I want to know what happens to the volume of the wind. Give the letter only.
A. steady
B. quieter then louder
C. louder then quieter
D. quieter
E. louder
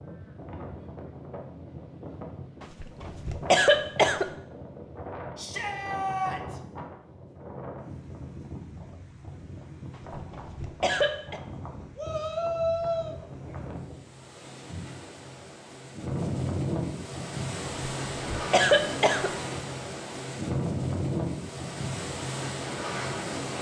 E.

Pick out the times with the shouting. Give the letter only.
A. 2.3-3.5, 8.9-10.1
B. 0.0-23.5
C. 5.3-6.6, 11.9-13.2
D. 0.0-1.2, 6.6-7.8
C.